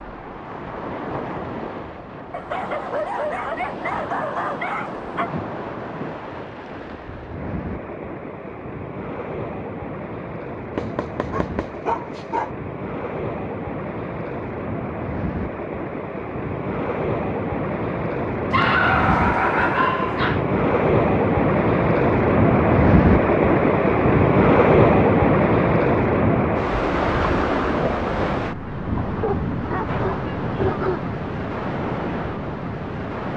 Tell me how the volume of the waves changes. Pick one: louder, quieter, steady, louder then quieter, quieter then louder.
louder then quieter.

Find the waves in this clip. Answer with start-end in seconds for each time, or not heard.
0.0-33.3.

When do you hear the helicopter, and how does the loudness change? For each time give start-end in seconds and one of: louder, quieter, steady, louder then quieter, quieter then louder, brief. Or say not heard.
not heard.